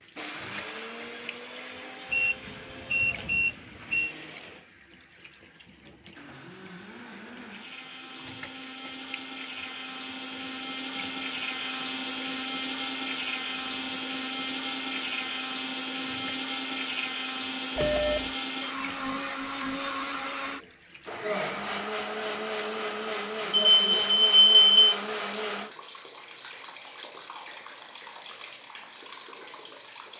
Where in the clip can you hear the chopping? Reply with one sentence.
You can't hear the chopping here.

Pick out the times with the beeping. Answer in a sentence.
The beeping can be heard from 2.1 to 4.2 s, from 17.8 to 18.3 s and from 23.5 to 24.9 s.